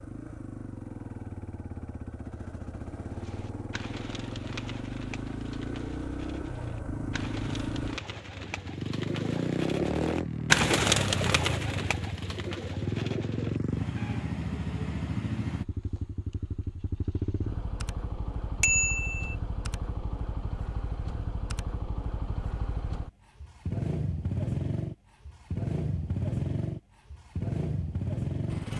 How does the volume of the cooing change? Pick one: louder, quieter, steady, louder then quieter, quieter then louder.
louder then quieter.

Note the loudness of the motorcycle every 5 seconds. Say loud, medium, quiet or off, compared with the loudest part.
medium, loud, loud, medium, loud, loud.